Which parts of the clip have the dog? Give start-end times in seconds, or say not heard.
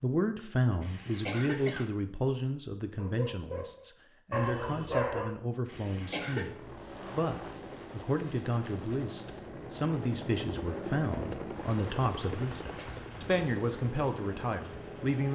3.0-5.3.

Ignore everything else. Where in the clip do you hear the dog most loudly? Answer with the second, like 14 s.
5 s.